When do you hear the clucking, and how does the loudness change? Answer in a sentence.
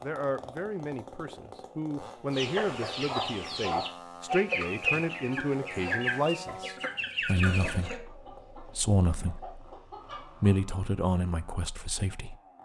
You can hear the clucking from 2.3 to 10.6 s, getting quieter.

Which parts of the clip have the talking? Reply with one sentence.
You can hear the talking from 0.0 to 9.6 s and from 10.4 to 12.3 s.